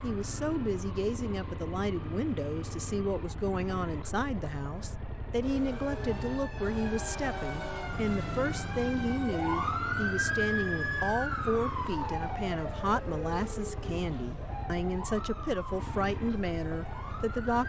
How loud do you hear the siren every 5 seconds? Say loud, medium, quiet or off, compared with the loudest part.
off, loud, loud, medium.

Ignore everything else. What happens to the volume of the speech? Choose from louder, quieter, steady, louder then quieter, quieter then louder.
steady.